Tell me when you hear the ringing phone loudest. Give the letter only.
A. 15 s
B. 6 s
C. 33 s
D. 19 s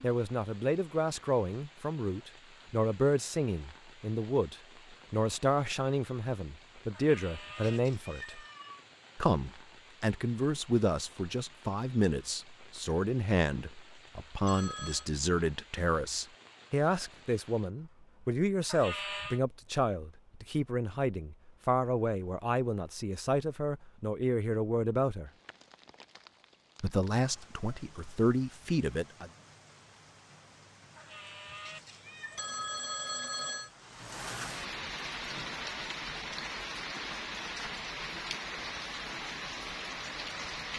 C.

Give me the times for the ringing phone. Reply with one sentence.
You can hear the ringing phone from 14.4 to 15.1 s and from 32.4 to 33.7 s.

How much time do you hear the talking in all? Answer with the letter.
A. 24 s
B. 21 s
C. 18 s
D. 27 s
D.